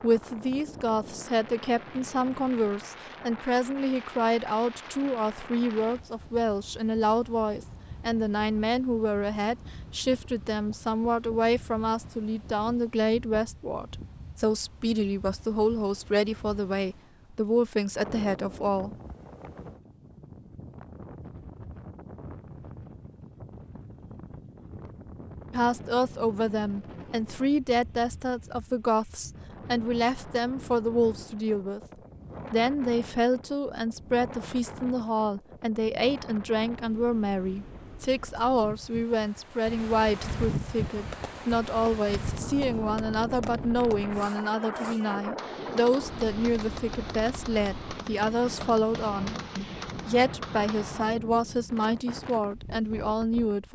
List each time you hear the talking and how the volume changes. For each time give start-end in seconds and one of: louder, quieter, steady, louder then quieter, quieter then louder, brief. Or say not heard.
0.0-18.9 steady
25.5-31.8 steady
32.5-53.6 steady.